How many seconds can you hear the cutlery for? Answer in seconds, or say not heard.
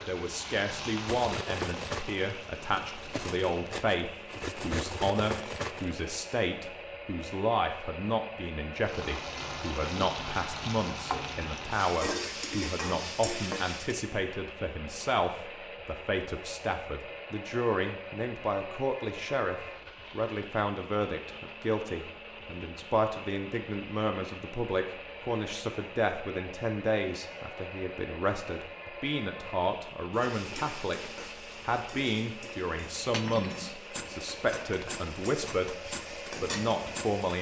9 s.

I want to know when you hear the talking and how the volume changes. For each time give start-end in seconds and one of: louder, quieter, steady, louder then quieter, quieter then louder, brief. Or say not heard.
0.0-35.8 steady
36.4-37.3 brief.